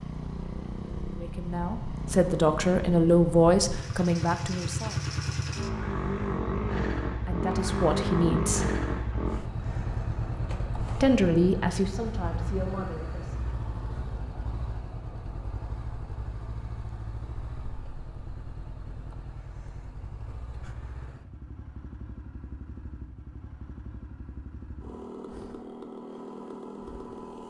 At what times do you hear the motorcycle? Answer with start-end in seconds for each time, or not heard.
0.0-27.4.